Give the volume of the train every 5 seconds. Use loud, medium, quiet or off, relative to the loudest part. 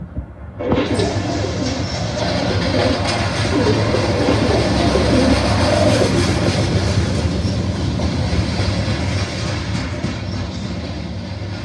loud, loud, medium.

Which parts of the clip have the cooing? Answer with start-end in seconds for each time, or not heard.
0.6-6.1.